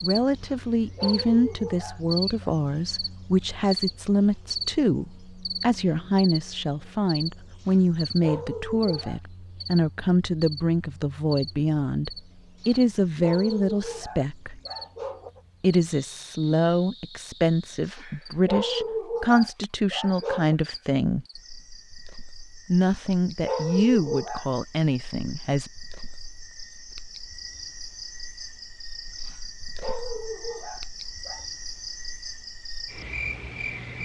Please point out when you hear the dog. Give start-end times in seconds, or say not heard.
0.3-2.5, 7.6-9.2, 12.6-15.4, 17.9-20.6, 22.9-24.5, 29.2-31.4.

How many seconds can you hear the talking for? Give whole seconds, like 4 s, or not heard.
23 s.